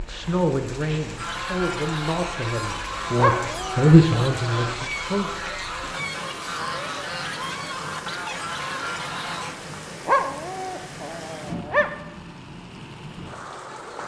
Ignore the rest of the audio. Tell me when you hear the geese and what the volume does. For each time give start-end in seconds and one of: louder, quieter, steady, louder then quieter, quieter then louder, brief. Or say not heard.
1.1-9.6 steady.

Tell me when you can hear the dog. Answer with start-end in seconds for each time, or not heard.
3.1-4.9, 10.1-11.9.